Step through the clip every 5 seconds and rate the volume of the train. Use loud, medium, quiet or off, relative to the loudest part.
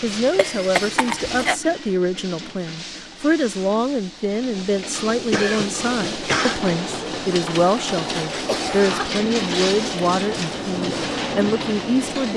medium, loud, loud.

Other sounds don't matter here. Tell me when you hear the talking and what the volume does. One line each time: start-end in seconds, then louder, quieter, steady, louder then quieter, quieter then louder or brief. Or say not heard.
0.0-12.3 steady.